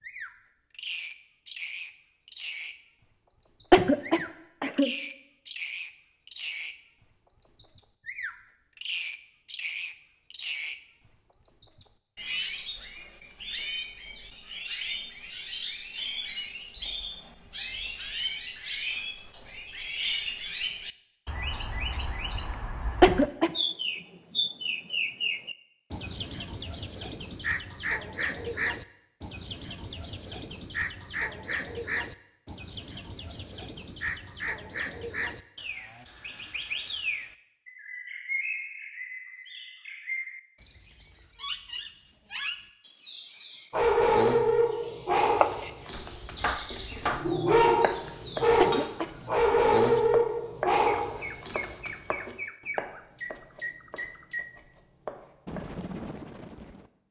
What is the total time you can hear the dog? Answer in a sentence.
You can hear the dog for 9 seconds altogether.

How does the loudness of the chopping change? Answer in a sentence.
The loudness of the chopping goes down.